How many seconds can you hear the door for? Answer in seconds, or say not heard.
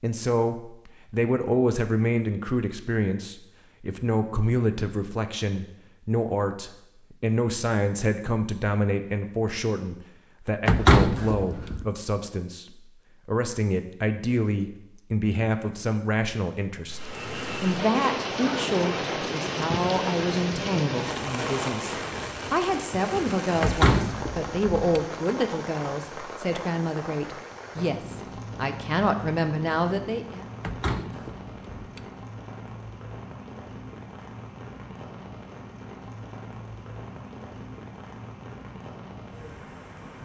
4 s.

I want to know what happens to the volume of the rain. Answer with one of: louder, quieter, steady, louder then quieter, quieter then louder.
quieter.